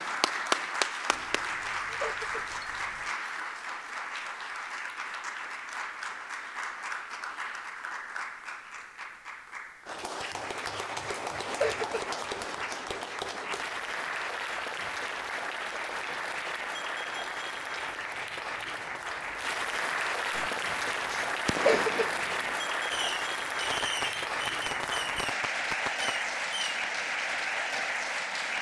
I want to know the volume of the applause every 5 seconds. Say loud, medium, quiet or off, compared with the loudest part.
loud, medium, loud, loud, loud, loud.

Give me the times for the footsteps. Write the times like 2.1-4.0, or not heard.
not heard.